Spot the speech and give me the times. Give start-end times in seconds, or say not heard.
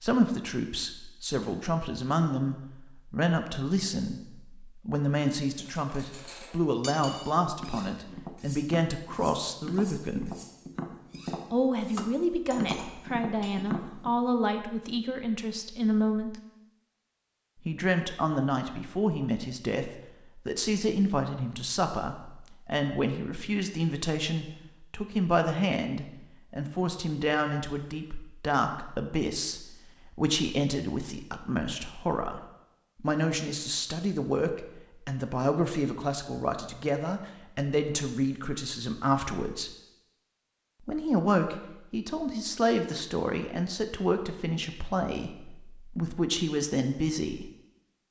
0.0-10.3, 11.5-16.4, 17.6-39.8, 40.9-47.5.